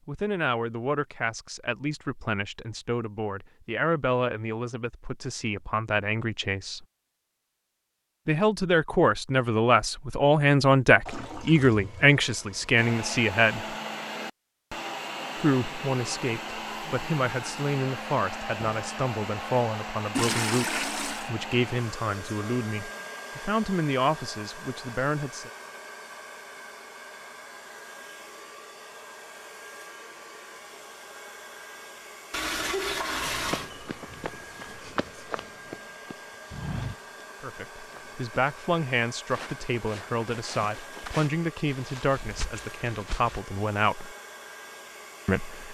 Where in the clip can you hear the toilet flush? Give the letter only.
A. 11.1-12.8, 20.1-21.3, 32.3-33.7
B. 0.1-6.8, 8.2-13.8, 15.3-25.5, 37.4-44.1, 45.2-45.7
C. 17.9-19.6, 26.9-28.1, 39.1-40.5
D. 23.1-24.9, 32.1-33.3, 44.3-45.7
A.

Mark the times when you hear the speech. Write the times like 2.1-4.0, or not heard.
0.1-6.8, 8.2-13.8, 15.3-25.5, 37.4-44.1, 45.2-45.7.